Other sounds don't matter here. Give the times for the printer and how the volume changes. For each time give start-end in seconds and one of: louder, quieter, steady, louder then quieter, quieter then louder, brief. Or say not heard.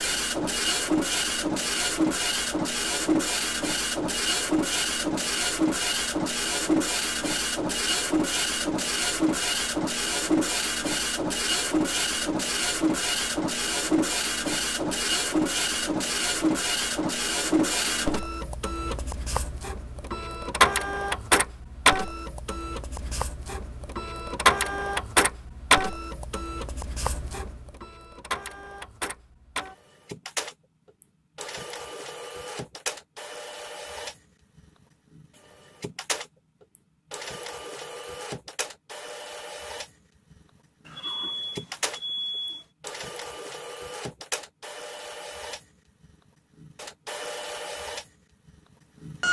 0.0-49.2 quieter.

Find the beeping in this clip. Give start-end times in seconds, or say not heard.
40.9-42.6.